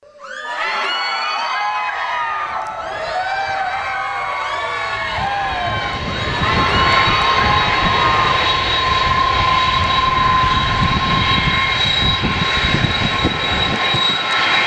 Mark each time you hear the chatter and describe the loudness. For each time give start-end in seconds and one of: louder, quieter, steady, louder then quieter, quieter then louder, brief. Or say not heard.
0.1-8.3 steady.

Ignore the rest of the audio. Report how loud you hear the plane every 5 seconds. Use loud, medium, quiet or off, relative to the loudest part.
quiet, loud, loud.